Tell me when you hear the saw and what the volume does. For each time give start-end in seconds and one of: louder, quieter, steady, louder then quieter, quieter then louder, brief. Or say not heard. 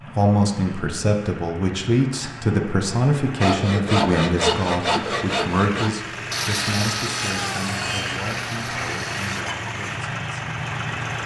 3.4-9.4 quieter.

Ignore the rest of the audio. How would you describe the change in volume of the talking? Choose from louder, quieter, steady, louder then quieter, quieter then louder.
quieter.